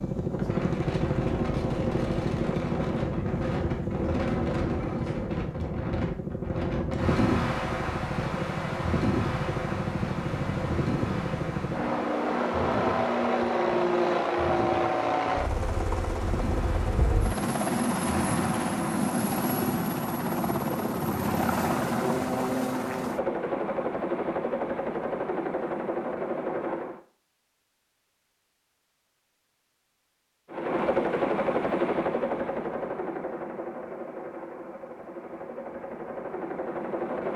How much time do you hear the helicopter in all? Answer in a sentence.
You can hear the helicopter for 34 seconds altogether.